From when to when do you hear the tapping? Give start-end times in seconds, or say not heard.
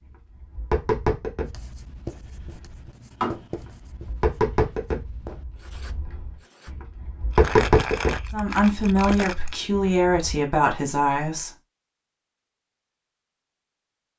0.1-10.3.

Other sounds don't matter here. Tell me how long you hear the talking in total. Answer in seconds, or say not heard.
3 s.